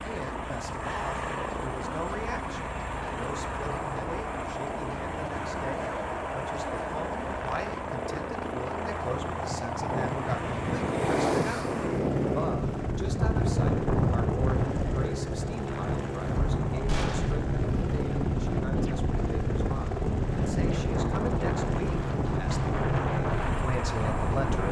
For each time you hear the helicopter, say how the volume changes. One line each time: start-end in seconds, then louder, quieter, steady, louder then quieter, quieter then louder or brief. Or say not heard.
0.0-24.6 steady.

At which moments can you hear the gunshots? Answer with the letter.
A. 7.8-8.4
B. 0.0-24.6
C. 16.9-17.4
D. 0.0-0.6
C.